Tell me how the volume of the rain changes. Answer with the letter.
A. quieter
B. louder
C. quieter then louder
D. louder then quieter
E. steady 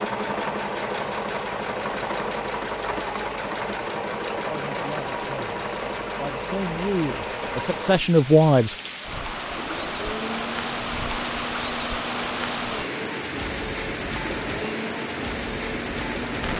B.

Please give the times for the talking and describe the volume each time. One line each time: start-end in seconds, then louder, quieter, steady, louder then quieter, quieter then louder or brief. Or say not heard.
4.5-8.8 louder.